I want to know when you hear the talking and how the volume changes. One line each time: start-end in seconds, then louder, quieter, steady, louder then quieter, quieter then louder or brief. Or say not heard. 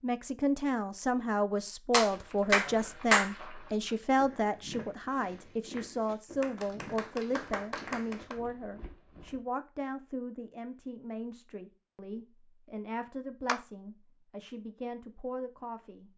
0.0-16.1 quieter.